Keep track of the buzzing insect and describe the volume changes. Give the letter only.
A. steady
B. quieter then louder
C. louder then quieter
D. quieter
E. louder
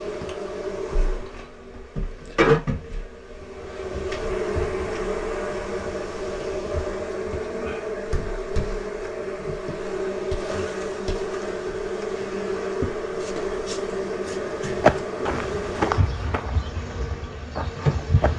A.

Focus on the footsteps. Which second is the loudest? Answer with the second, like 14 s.
15 s.